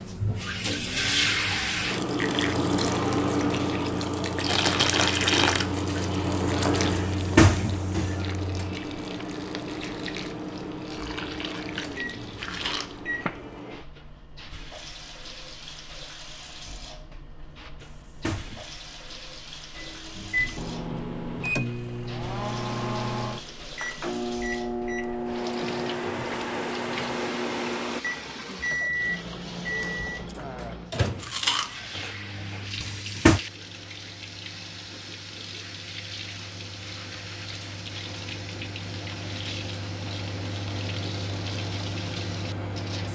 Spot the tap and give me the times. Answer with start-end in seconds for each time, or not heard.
0.0-43.1.